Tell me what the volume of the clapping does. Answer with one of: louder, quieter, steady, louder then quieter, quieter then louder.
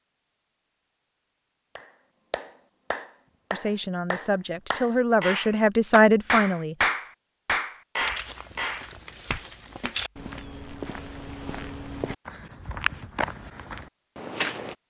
louder then quieter.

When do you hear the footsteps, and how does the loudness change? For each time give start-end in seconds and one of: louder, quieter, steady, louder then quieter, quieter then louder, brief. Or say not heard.
8.0-14.8 louder.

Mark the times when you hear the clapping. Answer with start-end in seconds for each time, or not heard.
1.8-10.4.